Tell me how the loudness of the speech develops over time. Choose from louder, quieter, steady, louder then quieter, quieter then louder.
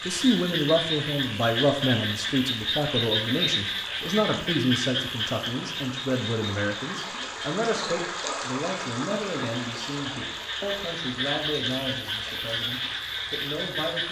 quieter.